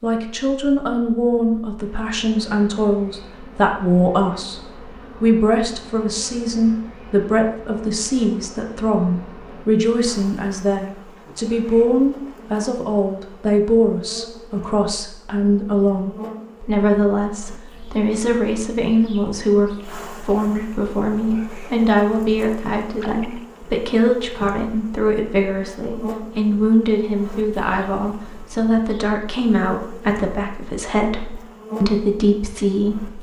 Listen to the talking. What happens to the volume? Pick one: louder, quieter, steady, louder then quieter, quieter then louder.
steady.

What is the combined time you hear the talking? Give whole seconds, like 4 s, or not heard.
33 s.